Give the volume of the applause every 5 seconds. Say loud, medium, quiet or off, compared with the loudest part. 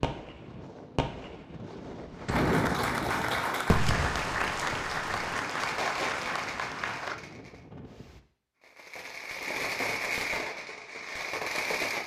loud, loud, off.